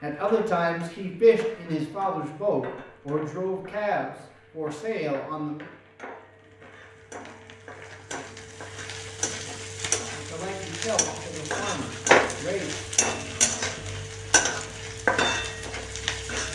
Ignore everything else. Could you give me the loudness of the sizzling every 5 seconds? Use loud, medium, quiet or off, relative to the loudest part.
quiet, medium, loud, loud.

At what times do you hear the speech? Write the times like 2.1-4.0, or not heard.
0.0-5.7, 10.1-13.3.